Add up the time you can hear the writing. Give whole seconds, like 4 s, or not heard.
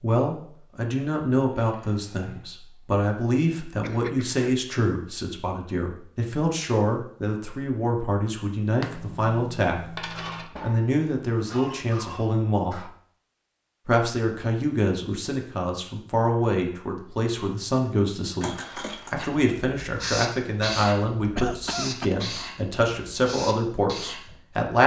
5 s.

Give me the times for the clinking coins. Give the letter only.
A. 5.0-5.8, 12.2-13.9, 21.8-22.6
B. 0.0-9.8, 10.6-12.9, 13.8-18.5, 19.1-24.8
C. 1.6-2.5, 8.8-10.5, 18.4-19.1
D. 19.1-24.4
C.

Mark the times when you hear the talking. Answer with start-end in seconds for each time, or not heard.
0.0-9.8, 10.6-12.9, 13.8-18.5, 19.1-24.8.